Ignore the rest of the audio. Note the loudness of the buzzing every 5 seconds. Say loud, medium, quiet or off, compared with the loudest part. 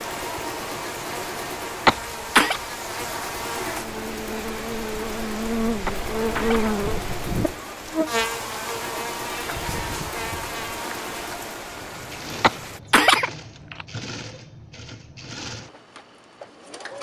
medium, loud, medium, off.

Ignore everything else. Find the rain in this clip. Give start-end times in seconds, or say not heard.
0.0-12.8.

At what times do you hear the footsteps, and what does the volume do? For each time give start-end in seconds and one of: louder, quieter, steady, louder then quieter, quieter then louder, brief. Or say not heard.
not heard.